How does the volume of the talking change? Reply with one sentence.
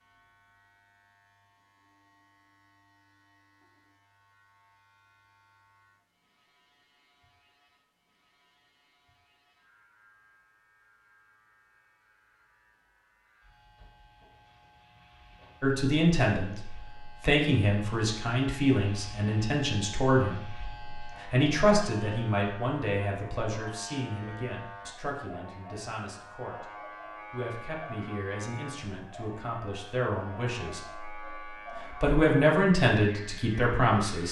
The loudness of the talking goes down, then up.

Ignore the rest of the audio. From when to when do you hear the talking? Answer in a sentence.
You can hear the talking from 15.6 to 26.7 s and from 27.3 to 34.2 s.